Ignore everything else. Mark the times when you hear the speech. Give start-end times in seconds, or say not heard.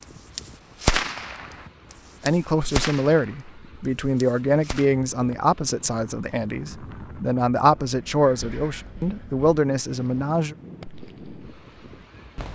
2.2-10.6.